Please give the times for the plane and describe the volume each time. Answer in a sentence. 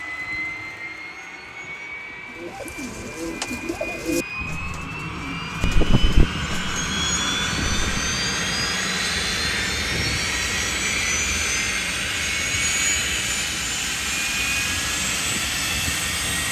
You can hear the plane from 0.0 to 16.4 s, getting louder.